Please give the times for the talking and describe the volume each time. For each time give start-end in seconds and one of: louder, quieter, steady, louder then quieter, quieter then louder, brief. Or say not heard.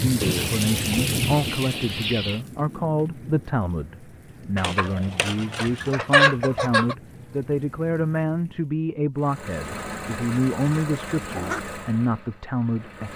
0.0-13.1 steady.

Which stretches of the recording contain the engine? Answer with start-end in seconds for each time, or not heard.
9.2-13.1.